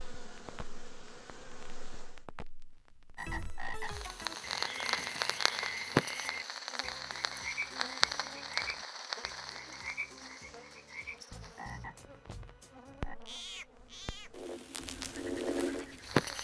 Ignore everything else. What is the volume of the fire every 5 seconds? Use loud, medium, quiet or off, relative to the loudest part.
medium, loud, quiet, loud.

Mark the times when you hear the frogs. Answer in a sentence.
The frogs can be heard from 3.1 to 16.4 s.